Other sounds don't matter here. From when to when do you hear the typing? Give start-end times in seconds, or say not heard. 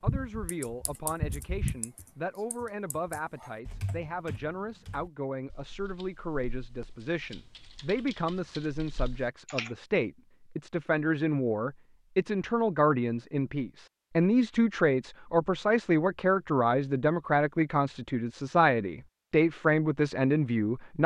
0.0-9.7.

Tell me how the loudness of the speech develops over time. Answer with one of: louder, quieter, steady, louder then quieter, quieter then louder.
louder.